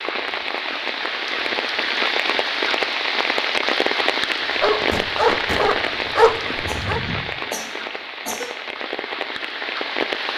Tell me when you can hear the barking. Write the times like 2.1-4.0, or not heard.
4.4-7.0.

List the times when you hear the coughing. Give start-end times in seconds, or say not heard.
6.5-8.6.